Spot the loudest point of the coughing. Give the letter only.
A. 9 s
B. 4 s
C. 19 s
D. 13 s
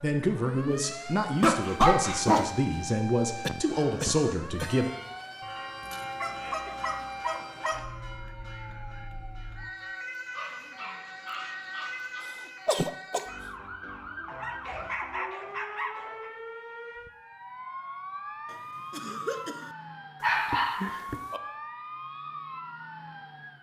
D.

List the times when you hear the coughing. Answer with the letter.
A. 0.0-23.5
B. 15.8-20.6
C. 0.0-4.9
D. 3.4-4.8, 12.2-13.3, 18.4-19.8
D.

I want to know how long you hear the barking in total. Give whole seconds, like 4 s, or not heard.
8 s.